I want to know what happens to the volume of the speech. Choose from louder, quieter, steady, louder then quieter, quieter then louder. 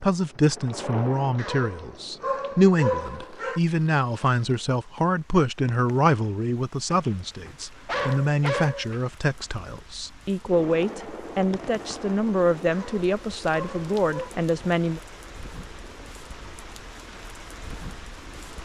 steady.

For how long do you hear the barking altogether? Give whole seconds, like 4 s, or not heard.
6 s.